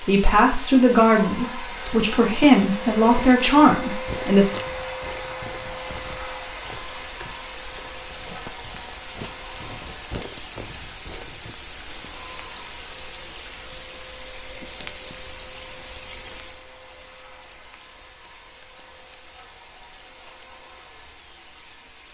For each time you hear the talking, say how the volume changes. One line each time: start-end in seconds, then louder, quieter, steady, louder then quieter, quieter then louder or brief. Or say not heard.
0.1-4.5 quieter then louder.